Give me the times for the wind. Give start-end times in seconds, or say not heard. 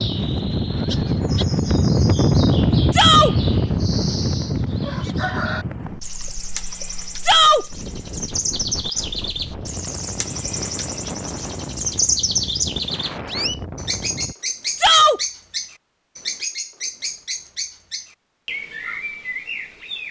0.0-14.3.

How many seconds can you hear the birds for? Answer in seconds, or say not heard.
20 s.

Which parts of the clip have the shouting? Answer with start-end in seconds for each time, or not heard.
2.9-3.4, 7.2-7.7, 14.8-15.2.